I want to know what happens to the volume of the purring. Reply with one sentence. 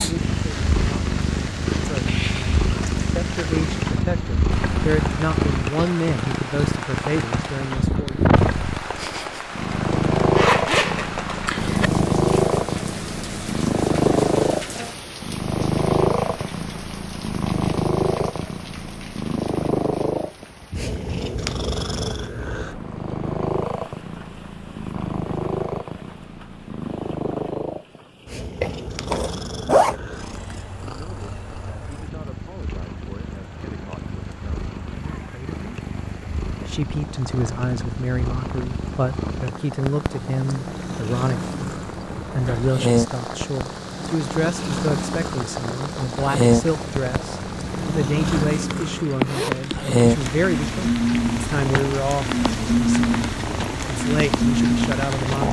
The loudness of the purring goes down, then up.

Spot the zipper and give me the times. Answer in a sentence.
You can hear the zipper from 10.3 to 11.9 s, from 28.6 to 29.9 s and from 49.0 to 49.7 s.